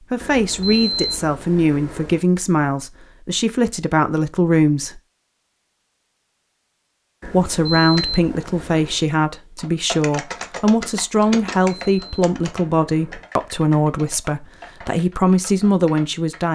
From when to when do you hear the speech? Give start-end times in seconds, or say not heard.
0.1-5.0, 7.2-16.5.